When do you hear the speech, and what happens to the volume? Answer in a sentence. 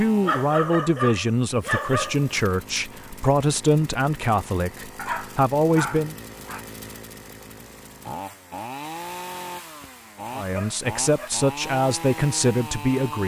You can hear the speech from 0.0 to 6.2 s, at a steady volume; and briefly from 10.3 to 13.2 s.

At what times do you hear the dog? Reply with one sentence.
You can hear the dog from 0.2 to 2.5 s, from 5.0 to 6.7 s and from 9.8 to 11.3 s.